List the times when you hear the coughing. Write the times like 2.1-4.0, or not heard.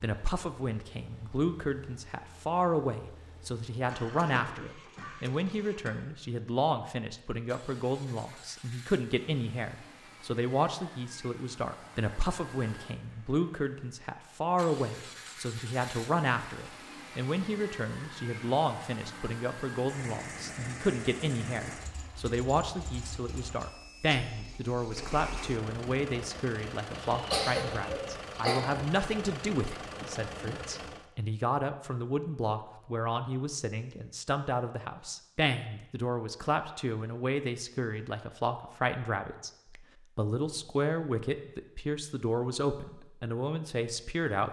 3.9-5.9, 27.0-28.6.